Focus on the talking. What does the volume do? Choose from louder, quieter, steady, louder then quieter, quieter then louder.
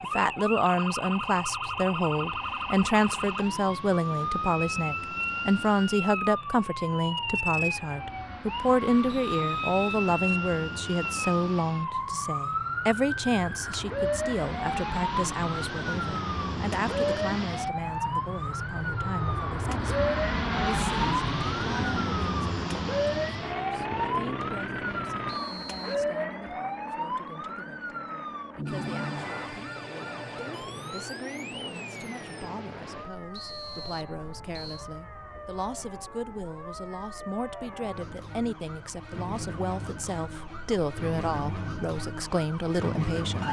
quieter then louder.